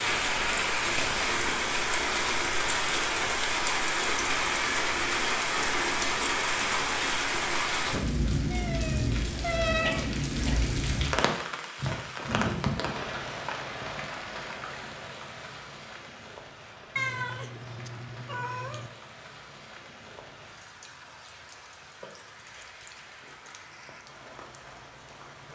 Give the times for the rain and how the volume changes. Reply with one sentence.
You can hear the rain from 0.0 to 25.5 s, getting quieter.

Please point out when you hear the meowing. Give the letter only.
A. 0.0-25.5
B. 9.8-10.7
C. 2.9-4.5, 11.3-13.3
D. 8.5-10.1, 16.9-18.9
D.